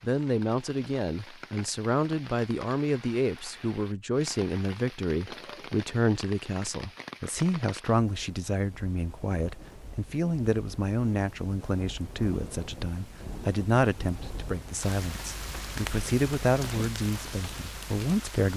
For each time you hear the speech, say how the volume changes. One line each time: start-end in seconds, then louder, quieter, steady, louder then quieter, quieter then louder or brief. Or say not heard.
0.0-18.5 steady.